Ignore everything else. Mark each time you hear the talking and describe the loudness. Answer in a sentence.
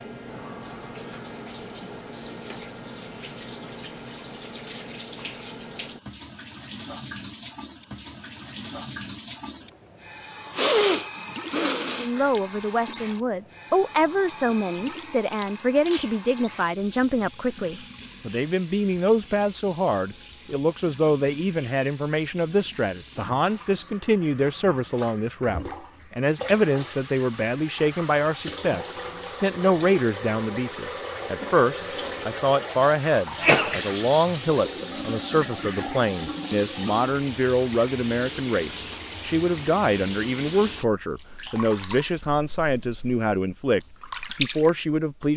You can hear the talking from 11.9 to 45.3 s, at a steady volume.